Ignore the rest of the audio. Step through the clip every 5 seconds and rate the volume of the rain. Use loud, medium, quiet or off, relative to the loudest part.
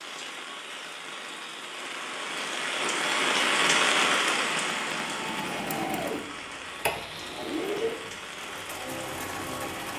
loud, medium.